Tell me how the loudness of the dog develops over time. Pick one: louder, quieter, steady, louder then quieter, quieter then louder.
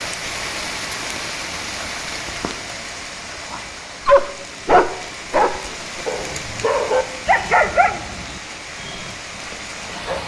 quieter.